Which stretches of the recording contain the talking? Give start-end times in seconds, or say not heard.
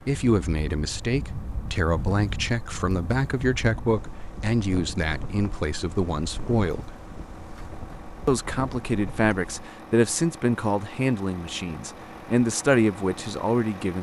0.1-7.0, 8.2-13.9.